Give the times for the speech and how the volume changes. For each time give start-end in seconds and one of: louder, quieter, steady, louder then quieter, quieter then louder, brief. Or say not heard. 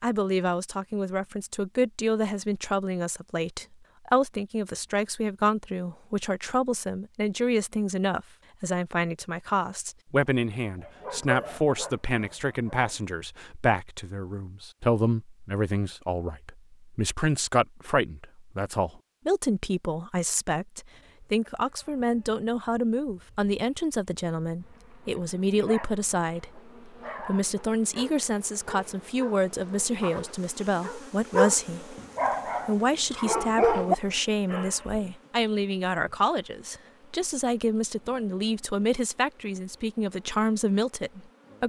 0.0-41.6 steady.